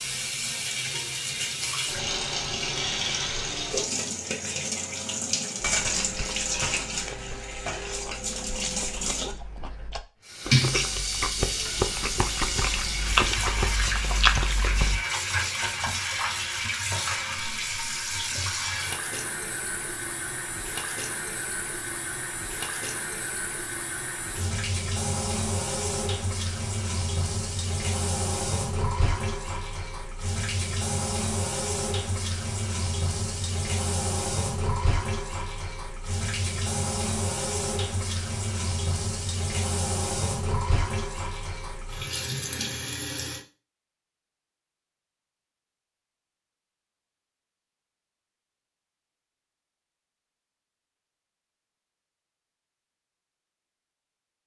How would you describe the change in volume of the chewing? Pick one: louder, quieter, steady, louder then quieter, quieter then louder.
louder.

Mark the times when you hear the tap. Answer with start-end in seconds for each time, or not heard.
0.0-43.5.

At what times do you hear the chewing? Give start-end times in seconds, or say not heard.
5.8-15.0.